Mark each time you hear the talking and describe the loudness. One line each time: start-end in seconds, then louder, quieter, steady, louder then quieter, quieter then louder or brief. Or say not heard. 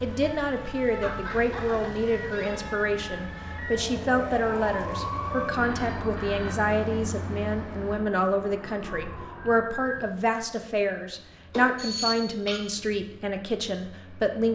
0.0-14.5 steady.